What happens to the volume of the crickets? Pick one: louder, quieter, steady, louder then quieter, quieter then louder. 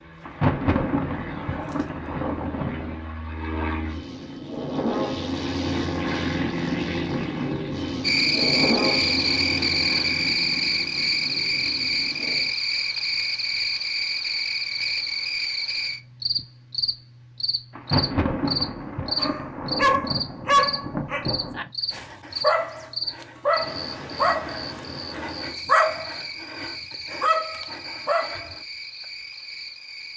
quieter.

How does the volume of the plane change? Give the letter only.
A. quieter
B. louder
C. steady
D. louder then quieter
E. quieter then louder
D.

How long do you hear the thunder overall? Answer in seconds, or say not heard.
7 s.